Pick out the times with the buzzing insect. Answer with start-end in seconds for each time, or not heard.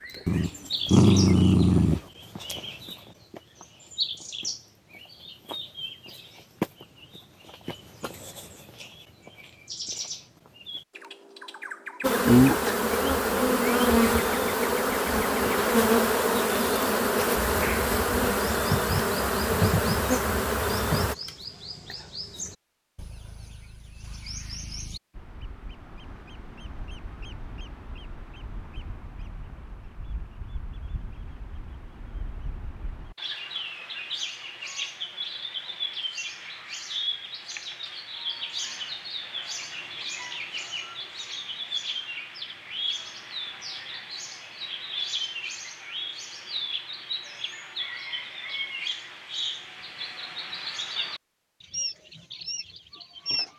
12.0-21.1.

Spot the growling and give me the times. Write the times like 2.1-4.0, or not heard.
0.2-2.0.